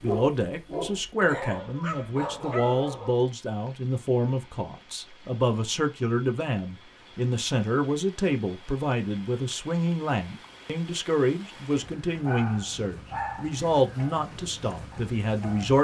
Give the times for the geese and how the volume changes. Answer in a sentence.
The geese can't be heard in this clip.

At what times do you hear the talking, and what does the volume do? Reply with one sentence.
The talking can be heard from 0.0 to 15.8 s, at a steady volume.